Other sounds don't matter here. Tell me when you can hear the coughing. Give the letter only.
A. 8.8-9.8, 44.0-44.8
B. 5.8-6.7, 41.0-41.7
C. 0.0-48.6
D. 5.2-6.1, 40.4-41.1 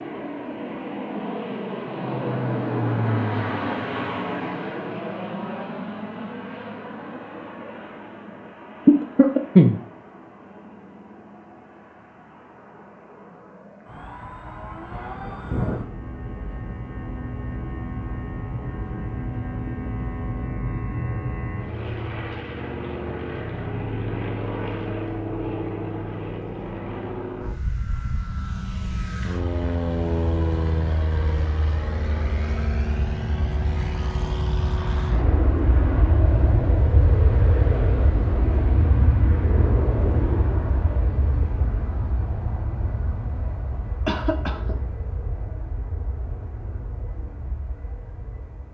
A.